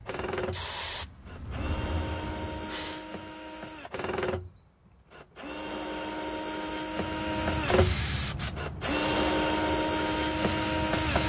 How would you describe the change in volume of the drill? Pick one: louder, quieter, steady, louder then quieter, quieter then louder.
louder.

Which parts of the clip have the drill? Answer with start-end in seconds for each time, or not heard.
0.1-11.2.